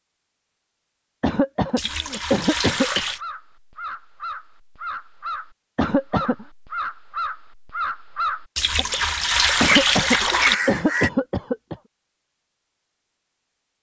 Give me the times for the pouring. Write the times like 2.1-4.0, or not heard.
1.8-3.2, 8.6-10.6.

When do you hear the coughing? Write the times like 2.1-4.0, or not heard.
1.2-3.0, 5.8-6.5, 9.6-11.8.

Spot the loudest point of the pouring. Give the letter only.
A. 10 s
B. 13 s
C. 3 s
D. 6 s
A.